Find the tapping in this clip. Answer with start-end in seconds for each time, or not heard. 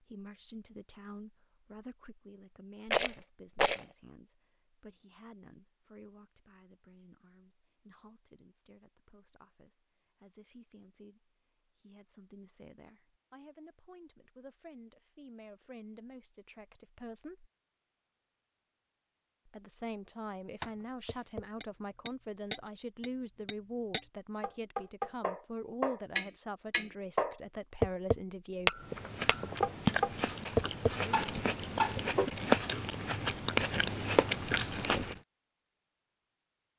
20.6-32.3.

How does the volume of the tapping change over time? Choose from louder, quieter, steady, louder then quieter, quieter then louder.
louder.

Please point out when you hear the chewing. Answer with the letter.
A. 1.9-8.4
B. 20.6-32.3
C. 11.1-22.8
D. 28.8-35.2
D.